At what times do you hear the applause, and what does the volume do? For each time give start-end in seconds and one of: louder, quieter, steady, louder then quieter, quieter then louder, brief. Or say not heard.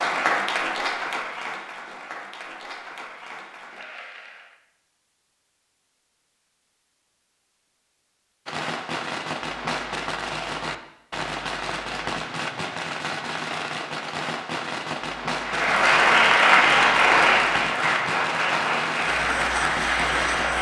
0.0-4.5 quieter
15.4-20.5 quieter.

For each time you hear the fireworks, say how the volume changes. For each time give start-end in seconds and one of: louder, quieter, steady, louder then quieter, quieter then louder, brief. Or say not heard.
8.4-20.5 steady.